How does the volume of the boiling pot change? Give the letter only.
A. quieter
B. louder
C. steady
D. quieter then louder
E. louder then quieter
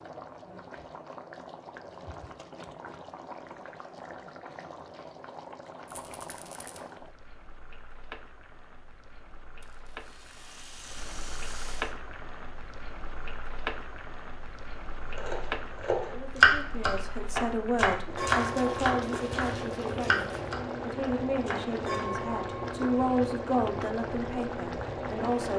B.